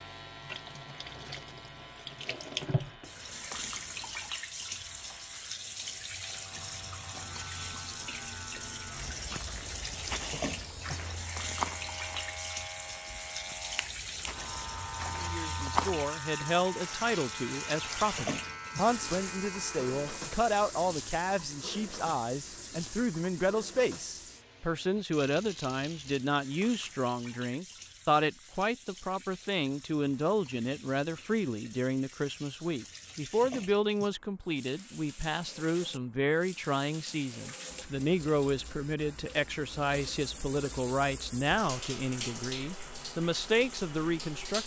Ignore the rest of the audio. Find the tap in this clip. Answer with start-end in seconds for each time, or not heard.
0.0-44.6.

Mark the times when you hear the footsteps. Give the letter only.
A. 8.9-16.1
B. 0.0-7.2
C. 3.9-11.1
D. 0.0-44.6
A.